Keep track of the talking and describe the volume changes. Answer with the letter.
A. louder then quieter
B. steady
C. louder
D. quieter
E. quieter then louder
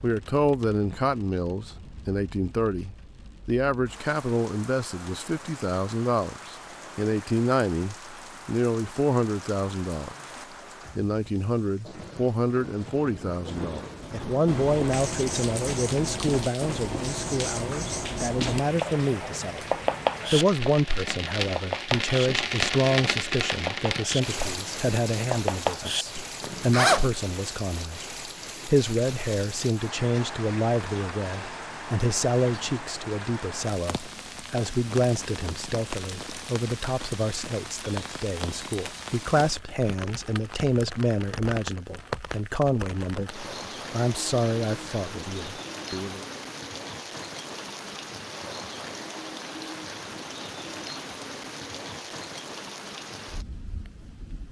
B.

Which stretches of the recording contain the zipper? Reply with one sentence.
The zipper can be heard from 26.4 to 27.1 s.